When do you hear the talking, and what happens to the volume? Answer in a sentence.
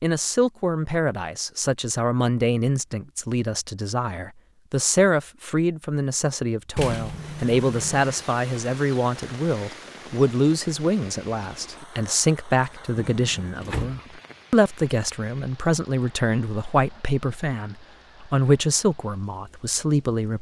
The talking can be heard from 0.0 to 20.3 s, at a steady volume.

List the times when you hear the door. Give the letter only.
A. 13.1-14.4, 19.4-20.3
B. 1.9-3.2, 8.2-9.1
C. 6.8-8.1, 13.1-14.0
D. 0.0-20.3
C.